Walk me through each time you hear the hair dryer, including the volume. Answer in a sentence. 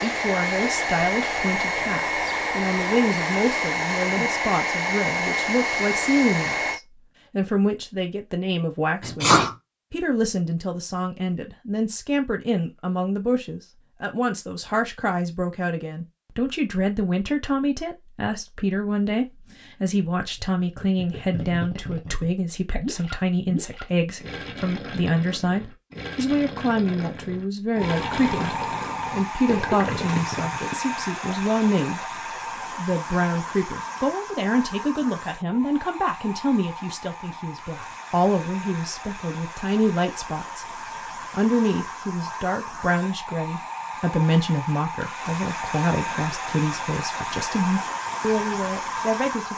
You can hear the hair dryer from 0.0 to 6.8 s, at a steady volume; and from 27.8 to 49.5 s, getting quieter then louder.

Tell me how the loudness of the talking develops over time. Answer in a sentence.
The loudness of the talking stays about the same.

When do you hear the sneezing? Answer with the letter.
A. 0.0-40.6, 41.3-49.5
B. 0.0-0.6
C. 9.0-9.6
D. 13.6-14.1
C.